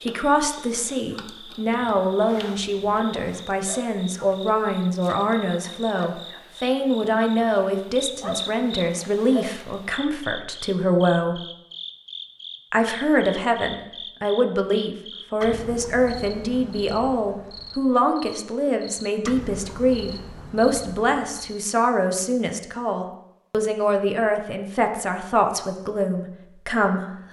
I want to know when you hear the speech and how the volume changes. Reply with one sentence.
The speech can be heard from 0.0 to 11.4 s, at a steady volume; and from 12.7 to 27.1 s, at a steady volume.